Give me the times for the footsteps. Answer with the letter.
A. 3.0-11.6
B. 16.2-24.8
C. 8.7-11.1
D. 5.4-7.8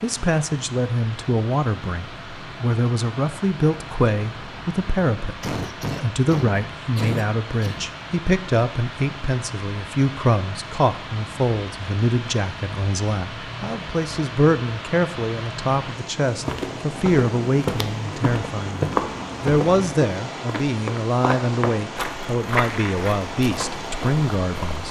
B.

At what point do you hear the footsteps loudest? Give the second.
19 s.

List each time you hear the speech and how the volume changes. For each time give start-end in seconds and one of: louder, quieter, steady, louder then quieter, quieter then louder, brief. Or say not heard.
0.0-24.8 steady.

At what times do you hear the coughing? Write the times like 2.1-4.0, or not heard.
5.4-7.8.